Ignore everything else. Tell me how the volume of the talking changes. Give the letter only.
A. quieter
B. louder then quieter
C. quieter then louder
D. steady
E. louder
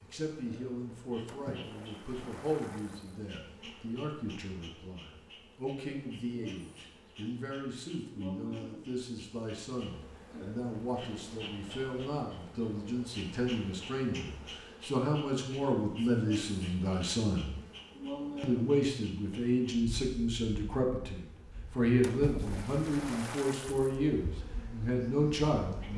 E.